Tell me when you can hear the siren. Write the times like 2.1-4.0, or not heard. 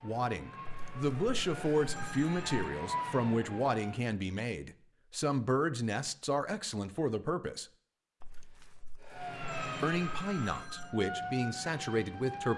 0.0-4.1, 9.1-12.5.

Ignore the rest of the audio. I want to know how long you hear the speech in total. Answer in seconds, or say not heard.
10 s.